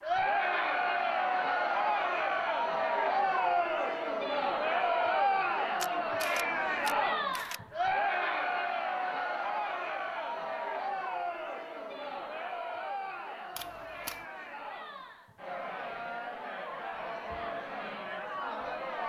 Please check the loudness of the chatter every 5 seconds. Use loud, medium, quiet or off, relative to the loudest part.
loud, loud, medium, medium.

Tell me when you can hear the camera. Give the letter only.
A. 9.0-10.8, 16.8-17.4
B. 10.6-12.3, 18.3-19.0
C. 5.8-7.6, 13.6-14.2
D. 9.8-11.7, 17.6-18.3
C.